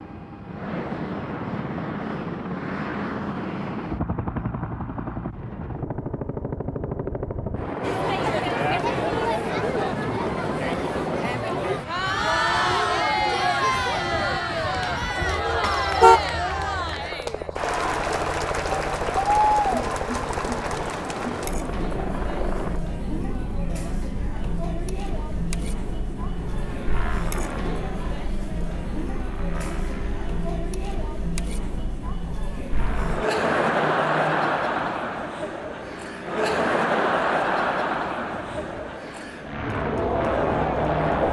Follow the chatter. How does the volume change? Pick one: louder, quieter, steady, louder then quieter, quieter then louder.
quieter then louder.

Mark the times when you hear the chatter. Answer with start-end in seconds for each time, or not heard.
7.8-41.2.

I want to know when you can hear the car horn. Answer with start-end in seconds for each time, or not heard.
15.6-16.2.